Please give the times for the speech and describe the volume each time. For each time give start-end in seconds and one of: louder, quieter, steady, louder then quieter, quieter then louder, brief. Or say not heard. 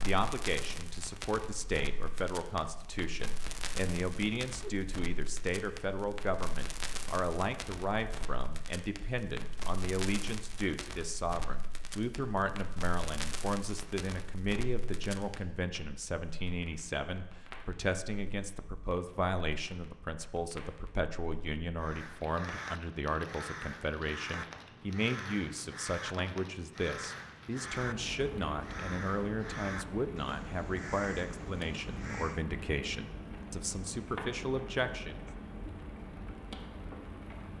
0.0-35.2 steady.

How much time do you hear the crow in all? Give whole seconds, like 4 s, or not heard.
11 s.